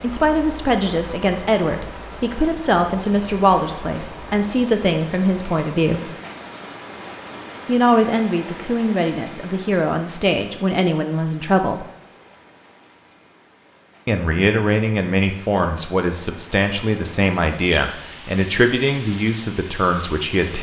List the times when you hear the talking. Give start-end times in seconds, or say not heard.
0.0-6.0, 7.7-11.8, 14.1-20.5.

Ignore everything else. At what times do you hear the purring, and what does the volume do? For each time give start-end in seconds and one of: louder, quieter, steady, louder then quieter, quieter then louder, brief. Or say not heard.
not heard.